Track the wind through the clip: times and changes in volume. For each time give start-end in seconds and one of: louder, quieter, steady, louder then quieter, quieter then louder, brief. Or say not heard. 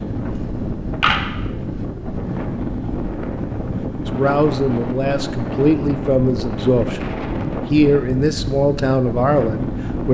0.0-10.0 steady.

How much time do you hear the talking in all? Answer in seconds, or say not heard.
6 s.